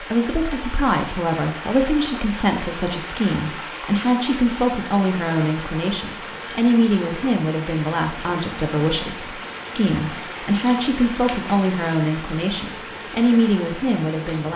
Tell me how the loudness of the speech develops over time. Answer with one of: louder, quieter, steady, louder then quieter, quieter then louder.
steady.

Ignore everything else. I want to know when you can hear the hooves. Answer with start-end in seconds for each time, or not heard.
not heard.